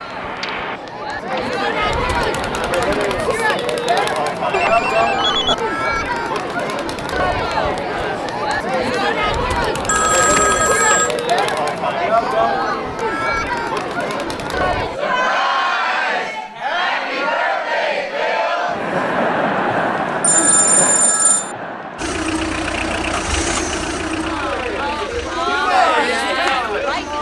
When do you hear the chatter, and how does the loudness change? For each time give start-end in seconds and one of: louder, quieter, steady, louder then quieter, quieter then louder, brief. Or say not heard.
0.0-27.1 steady.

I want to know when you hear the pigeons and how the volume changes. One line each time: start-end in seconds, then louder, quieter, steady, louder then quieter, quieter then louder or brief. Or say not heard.
not heard.